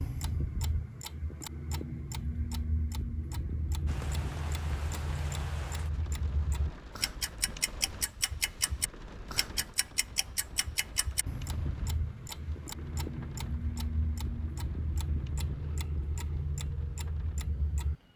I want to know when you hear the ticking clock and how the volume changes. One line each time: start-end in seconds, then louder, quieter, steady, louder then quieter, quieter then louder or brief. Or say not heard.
0.0-17.9 steady.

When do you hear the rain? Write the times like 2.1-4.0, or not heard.
3.9-18.1.